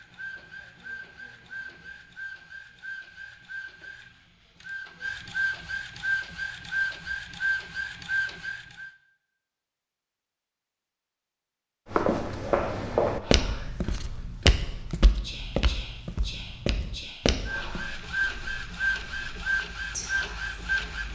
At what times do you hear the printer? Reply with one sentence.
The printer can be heard from 0.0 to 8.9 s and from 17.4 to 21.0 s.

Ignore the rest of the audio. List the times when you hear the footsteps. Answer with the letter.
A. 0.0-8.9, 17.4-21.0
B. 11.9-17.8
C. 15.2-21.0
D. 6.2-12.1
B.